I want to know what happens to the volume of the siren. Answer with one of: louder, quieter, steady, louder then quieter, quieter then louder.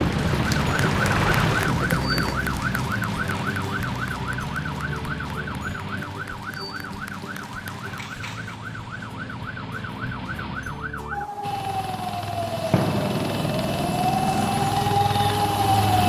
quieter then louder.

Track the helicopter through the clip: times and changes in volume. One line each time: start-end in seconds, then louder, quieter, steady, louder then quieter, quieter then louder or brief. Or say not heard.
0.0-1.7 brief
11.4-16.0 louder.